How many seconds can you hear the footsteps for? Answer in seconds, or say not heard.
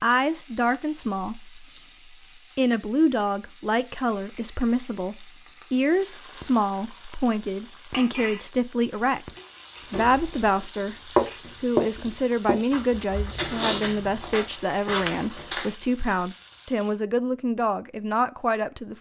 6 s.